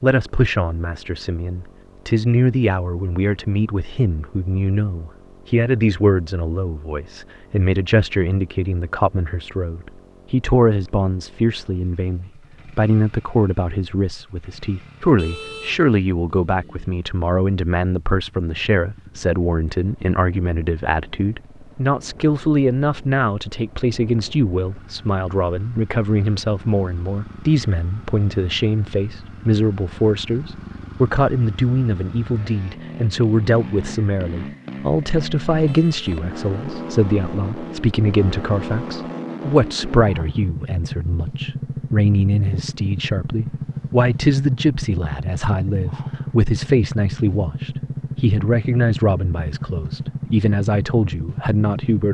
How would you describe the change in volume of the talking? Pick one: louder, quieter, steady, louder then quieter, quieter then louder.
steady.